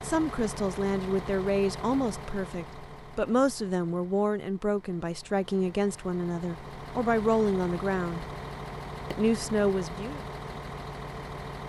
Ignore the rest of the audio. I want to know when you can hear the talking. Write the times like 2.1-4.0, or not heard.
0.0-8.2, 9.1-10.2.